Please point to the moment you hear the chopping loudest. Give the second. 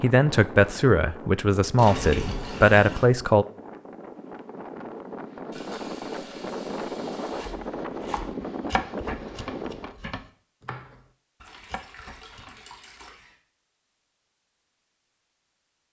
9 s.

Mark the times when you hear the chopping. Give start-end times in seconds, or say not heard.
7.3-12.6.